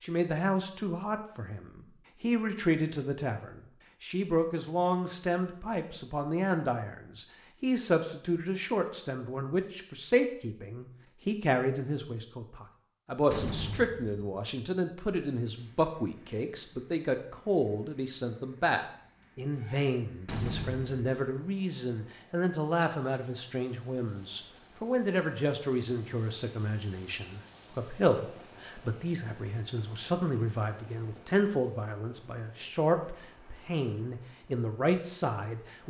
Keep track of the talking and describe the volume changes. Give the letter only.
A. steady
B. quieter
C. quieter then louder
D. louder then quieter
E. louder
A.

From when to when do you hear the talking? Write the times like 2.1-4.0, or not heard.
0.0-35.8.